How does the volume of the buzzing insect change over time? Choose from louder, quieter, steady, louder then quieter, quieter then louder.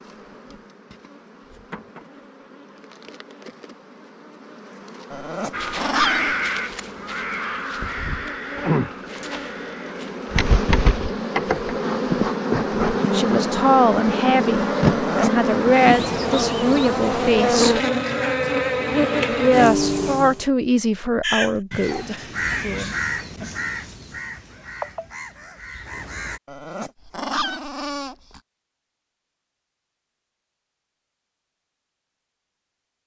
louder.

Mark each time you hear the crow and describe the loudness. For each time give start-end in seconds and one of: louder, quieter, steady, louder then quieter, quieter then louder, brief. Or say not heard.
5.5-10.4 quieter
21.2-26.4 quieter.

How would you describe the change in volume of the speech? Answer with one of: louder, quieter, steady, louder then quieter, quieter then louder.
quieter.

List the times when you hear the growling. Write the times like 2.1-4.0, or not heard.
5.1-6.5, 14.8-15.5, 26.4-28.4.